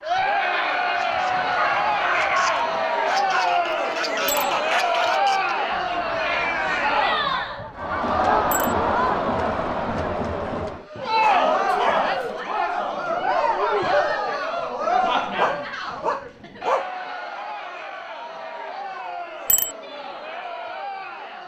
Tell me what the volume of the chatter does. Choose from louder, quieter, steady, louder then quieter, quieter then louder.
quieter.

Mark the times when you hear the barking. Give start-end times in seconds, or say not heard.
1.2-2.9, 11.0-12.3, 15.3-16.9.